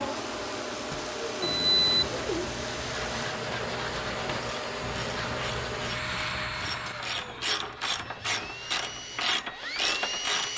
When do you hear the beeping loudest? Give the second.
2 s.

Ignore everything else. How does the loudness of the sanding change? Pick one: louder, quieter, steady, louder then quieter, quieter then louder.
quieter.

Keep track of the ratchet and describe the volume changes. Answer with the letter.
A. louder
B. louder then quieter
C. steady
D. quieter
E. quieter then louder
A.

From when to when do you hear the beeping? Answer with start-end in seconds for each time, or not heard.
1.4-2.2, 8.0-8.4.